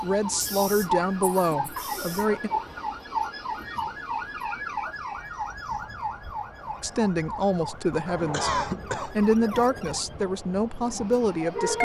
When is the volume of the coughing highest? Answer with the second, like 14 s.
9 s.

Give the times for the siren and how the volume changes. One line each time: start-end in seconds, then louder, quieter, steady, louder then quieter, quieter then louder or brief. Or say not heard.
0.0-11.7 quieter.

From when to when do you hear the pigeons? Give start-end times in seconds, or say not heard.
not heard.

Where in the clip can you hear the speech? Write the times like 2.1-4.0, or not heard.
0.0-2.5, 6.8-11.7.